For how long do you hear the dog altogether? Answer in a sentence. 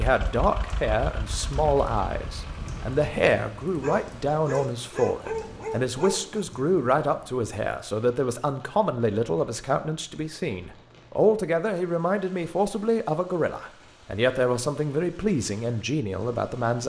You can hear the dog for 3 seconds altogether.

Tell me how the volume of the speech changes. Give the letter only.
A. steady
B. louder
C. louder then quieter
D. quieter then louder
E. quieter
A.